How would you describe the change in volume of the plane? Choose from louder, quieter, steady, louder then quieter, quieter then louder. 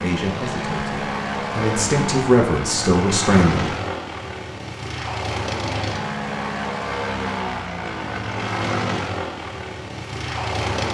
steady.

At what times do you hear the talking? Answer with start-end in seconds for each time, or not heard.
0.0-3.7.